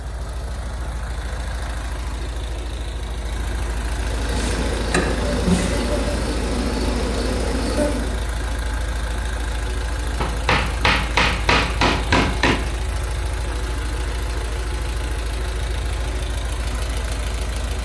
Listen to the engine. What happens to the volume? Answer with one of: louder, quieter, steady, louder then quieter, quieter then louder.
steady.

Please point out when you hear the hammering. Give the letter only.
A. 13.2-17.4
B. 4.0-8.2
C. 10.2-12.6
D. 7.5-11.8
C.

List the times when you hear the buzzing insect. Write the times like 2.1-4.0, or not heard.
4.0-8.2.